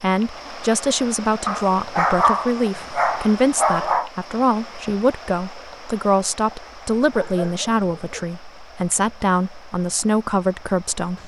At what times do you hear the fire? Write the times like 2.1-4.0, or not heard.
not heard.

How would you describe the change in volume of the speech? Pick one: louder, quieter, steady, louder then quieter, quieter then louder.
steady.